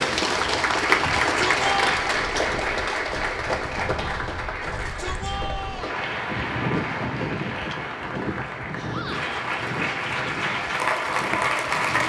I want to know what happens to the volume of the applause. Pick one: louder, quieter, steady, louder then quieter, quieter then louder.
quieter then louder.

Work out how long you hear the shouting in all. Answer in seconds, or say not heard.
3 s.